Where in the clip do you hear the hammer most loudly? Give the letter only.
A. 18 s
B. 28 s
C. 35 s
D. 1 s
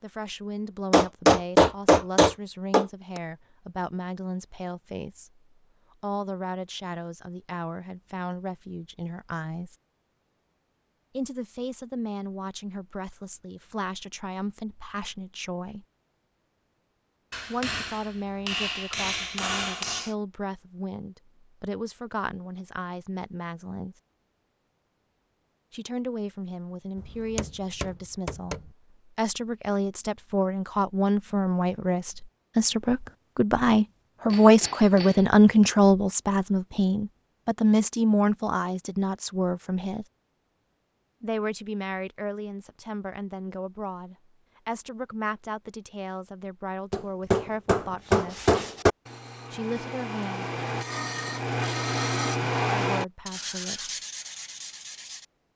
D.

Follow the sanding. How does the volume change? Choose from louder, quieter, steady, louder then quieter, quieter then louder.
louder then quieter.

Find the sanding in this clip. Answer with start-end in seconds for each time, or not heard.
48.0-55.2.